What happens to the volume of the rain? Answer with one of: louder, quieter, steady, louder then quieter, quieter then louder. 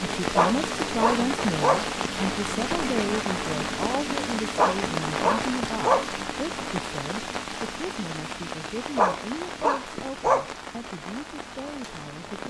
quieter.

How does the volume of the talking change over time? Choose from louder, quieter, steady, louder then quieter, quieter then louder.
quieter.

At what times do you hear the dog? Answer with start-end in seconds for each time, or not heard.
0.3-1.9, 4.5-6.1, 8.9-10.5.